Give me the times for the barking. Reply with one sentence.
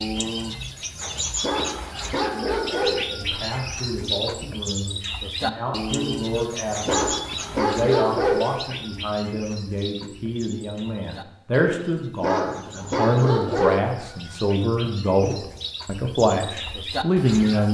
You can hear the barking from 1.4 to 3.0 s, from 6.8 to 8.4 s and from 12.2 to 13.8 s.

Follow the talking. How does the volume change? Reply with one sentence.
The volume of the talking goes up.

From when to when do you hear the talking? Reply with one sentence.
You can hear the talking from 3.1 to 17.6 s.